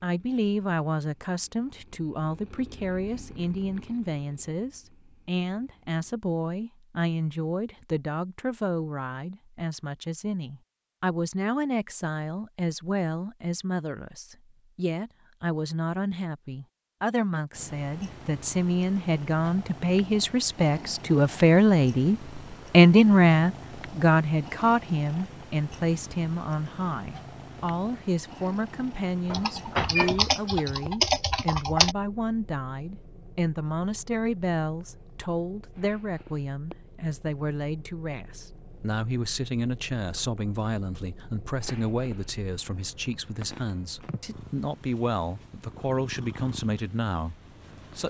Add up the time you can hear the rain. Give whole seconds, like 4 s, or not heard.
not heard.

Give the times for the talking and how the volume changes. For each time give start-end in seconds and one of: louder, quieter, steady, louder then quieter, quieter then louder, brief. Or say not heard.
0.0-48.0 louder then quieter.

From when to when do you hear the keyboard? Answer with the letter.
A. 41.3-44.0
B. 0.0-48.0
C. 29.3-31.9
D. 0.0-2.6
C.